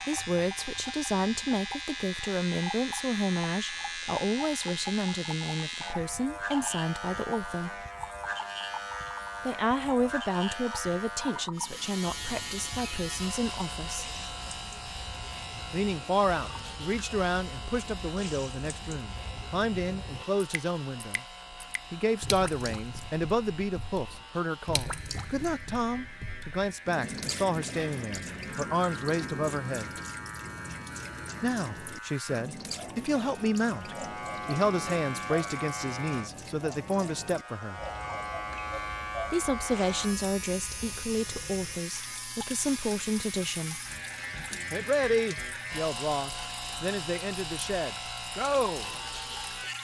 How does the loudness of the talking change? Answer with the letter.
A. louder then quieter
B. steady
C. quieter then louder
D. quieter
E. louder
B.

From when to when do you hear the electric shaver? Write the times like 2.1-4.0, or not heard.
0.0-49.7.